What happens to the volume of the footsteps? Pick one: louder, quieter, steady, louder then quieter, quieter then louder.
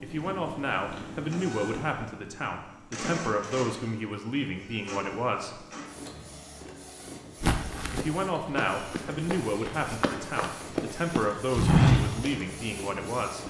louder.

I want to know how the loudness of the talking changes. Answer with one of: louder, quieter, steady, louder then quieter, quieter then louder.
steady.